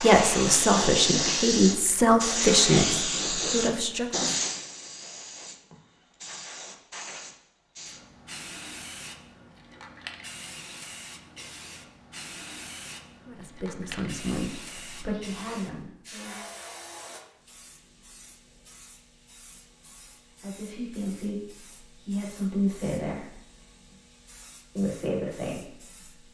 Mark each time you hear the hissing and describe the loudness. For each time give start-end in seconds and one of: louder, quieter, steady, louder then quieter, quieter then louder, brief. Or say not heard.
0.0-26.2 quieter.